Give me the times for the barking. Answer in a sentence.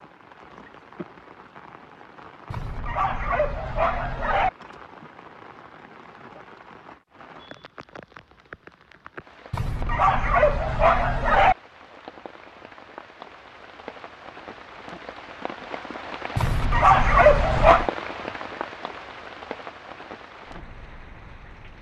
You can hear the barking from 2.5 to 4.5 s, from 9.5 to 11.6 s and from 16.4 to 17.9 s.